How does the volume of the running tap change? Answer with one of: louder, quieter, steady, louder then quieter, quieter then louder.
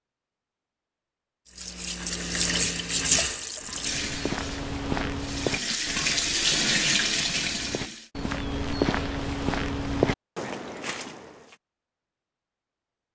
quieter then louder.